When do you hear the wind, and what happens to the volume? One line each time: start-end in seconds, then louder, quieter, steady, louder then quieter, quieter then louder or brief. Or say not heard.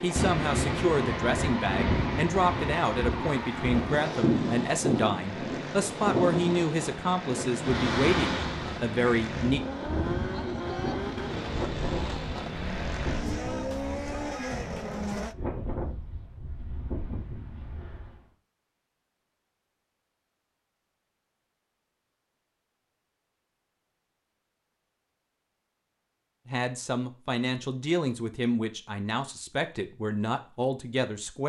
0.0-18.2 quieter.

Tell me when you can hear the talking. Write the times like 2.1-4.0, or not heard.
0.0-9.6, 26.4-31.4.